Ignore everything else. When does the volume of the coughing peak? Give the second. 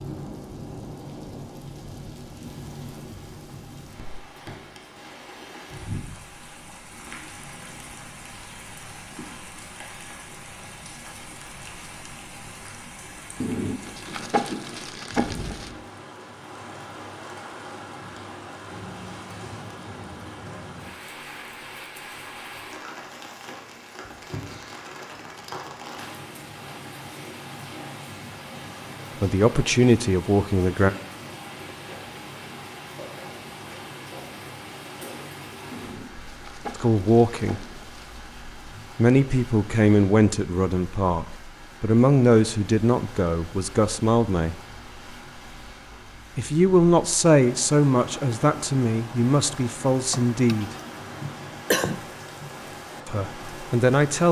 52 s.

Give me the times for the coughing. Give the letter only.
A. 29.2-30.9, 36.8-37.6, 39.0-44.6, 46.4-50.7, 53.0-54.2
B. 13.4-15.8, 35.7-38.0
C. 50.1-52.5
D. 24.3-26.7
C.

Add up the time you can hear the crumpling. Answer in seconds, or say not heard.
5 s.